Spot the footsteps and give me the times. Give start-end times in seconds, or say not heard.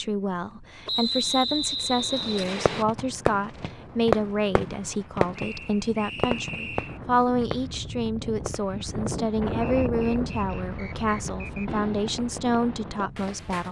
not heard.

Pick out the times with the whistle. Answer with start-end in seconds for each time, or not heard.
0.8-2.9, 5.3-7.0, 9.6-11.7.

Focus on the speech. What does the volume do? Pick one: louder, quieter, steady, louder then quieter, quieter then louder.
steady.